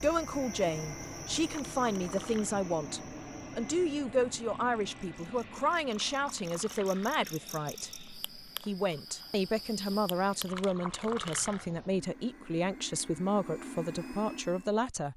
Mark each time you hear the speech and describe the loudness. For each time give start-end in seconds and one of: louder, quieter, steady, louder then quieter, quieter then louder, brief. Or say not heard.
0.0-15.1 steady.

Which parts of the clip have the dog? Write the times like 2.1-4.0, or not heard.
not heard.